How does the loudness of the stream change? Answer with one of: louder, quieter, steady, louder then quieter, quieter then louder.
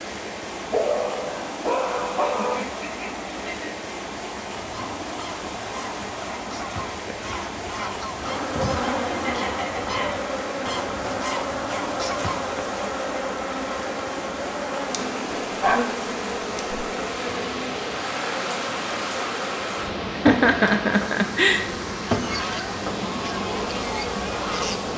steady.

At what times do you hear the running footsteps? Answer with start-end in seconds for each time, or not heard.
not heard.